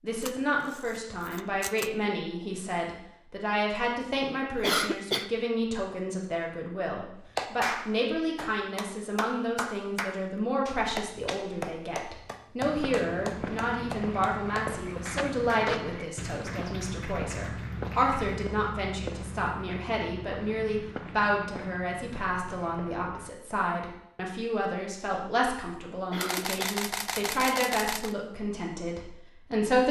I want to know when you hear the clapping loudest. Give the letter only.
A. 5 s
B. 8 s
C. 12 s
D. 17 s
B.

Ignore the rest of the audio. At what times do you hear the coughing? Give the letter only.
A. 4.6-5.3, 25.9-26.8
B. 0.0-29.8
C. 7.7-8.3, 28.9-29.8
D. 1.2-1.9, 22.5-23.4
A.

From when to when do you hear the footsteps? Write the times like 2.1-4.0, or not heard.
12.6-23.3.